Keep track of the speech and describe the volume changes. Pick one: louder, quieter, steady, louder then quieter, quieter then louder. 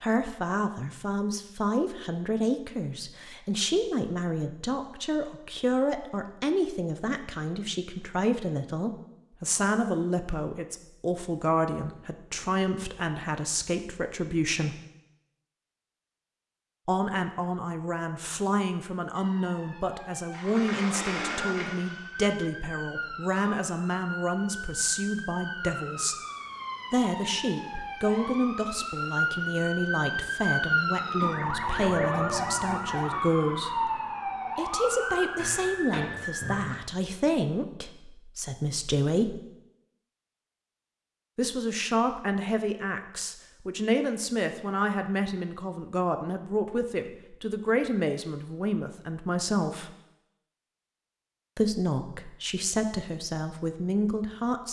steady.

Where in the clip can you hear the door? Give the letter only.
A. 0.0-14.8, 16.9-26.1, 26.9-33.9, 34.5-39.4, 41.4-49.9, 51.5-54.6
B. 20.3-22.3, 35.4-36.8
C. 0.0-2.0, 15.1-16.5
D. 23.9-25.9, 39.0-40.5
B.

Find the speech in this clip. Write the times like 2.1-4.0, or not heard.
0.0-14.8, 16.9-26.1, 26.9-33.9, 34.5-39.4, 41.4-49.9, 51.5-54.6.